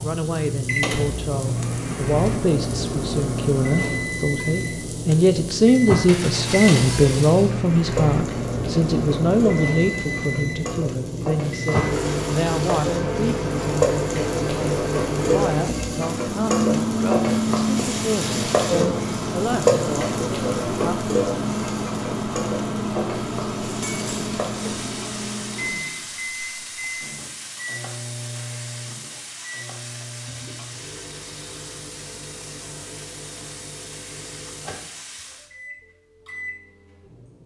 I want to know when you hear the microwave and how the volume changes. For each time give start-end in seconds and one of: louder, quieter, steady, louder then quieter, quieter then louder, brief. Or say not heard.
0.0-37.4 quieter.